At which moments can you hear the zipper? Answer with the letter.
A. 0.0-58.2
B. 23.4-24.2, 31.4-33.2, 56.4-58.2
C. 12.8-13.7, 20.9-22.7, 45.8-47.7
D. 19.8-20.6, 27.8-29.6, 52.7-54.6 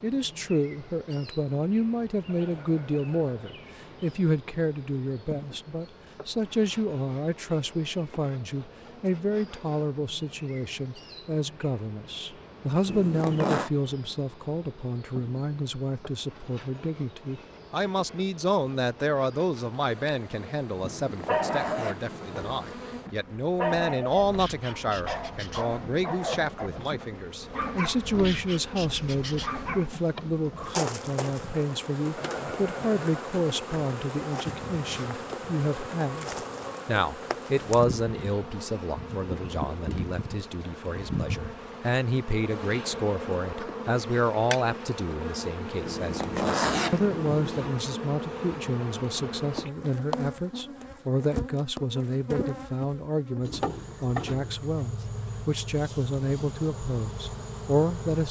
C.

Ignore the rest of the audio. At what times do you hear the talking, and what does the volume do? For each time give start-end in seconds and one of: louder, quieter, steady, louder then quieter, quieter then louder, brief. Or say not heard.
0.0-58.2 steady.